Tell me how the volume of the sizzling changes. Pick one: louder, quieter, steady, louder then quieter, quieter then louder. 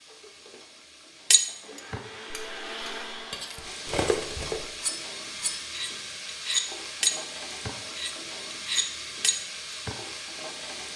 louder.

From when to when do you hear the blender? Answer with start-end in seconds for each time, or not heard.
0.0-3.9.